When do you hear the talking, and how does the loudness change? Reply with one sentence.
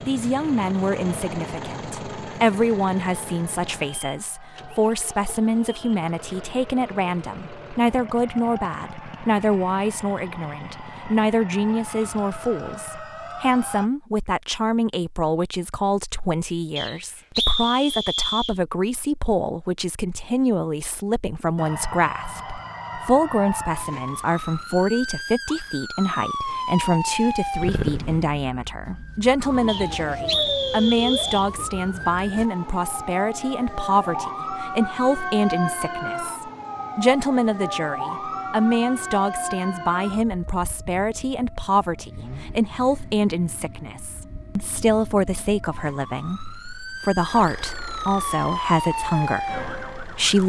The talking can be heard from 0.1 to 50.4 s, at a steady volume.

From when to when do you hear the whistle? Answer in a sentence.
The whistle can be heard from 16.8 to 18.6 s and from 29.6 to 31.5 s.